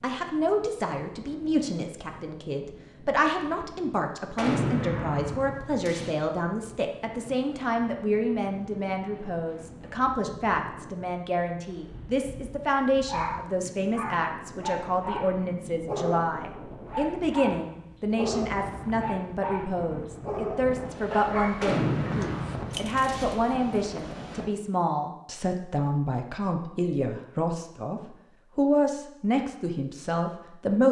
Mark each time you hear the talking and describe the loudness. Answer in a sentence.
You can hear the talking from 0.0 to 30.8 s, at a steady volume.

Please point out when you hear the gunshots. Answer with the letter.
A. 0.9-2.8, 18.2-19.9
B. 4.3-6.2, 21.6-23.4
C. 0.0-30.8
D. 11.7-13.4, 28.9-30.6
B.